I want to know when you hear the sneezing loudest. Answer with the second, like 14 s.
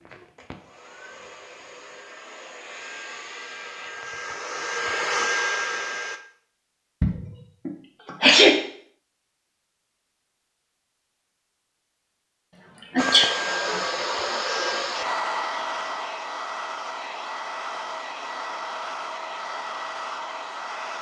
8 s.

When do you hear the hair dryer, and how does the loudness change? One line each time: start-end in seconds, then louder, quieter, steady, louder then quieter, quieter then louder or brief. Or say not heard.
0.0-6.2 louder
12.9-20.9 quieter.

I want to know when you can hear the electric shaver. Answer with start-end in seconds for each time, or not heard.
not heard.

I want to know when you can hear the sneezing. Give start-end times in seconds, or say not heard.
7.0-8.5, 12.8-13.8.